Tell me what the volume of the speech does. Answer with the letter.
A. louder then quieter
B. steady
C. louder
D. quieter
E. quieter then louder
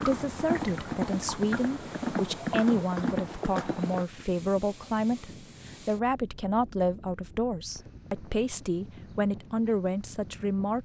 B.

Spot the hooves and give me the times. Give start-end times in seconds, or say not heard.
0.0-4.0.